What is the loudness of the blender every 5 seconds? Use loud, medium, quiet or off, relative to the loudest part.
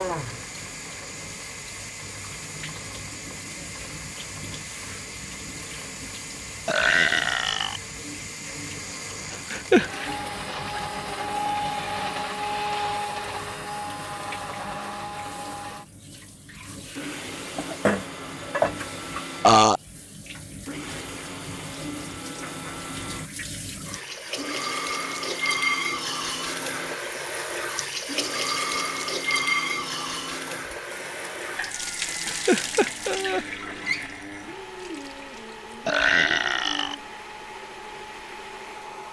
medium, medium, loud, medium, medium, medium, medium, medium.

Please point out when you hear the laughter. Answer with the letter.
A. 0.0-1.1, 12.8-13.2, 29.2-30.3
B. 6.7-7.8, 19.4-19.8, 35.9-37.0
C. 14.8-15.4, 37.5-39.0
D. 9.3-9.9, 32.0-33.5
D.